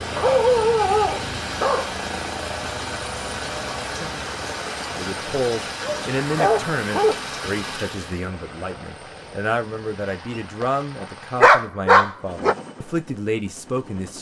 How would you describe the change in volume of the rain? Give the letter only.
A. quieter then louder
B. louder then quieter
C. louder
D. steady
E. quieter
D.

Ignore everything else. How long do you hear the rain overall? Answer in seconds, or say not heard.
8 s.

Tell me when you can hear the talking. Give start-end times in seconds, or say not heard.
5.0-14.1.